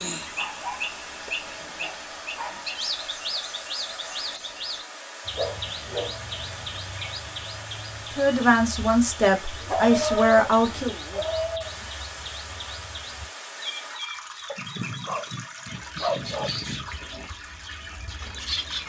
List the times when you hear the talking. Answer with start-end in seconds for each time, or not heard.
8.1-10.9.